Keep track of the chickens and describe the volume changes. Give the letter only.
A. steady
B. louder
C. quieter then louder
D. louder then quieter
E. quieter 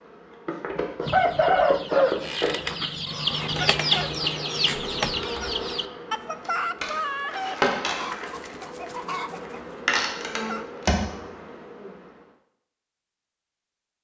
E.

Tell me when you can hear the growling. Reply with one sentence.
The growling can't be heard in this clip.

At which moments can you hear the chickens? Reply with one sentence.
The chickens can be heard from 1.0 to 10.7 s.